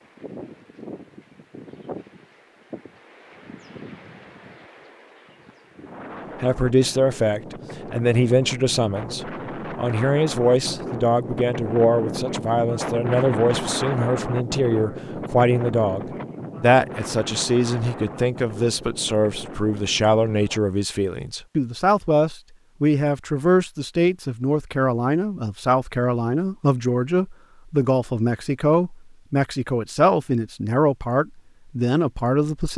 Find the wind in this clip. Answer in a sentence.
You can hear the wind from 0.0 to 20.6 s.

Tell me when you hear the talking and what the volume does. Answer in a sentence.
You can hear the talking from 6.4 to 32.7 s, at a steady volume.